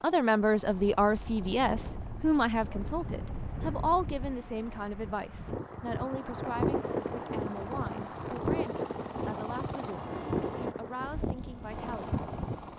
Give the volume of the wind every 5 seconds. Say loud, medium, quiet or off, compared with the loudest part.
medium, loud, loud.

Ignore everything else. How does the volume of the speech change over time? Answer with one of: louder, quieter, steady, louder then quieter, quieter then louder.
quieter.